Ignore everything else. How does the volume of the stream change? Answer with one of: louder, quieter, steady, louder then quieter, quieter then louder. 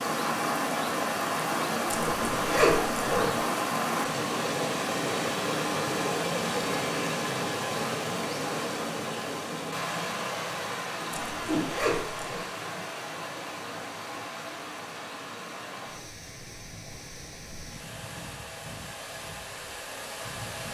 quieter.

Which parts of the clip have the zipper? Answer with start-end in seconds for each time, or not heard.
1.9-3.4, 11.1-12.4.